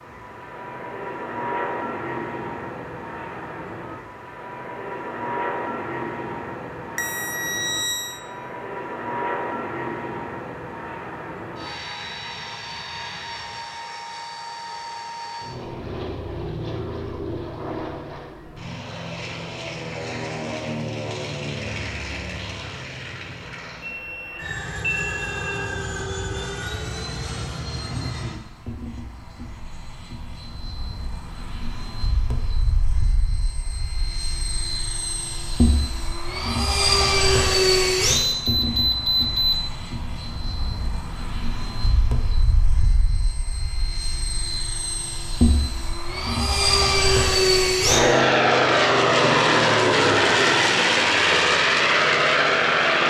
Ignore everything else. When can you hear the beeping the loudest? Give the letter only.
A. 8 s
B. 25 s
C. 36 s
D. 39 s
D.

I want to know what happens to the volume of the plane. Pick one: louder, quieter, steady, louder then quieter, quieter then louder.
louder.